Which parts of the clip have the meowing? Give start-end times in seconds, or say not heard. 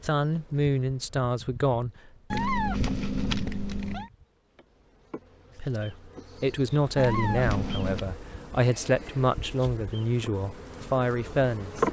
2.3-4.1, 7.0-8.1.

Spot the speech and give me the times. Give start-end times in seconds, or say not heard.
0.0-2.5, 5.5-11.8.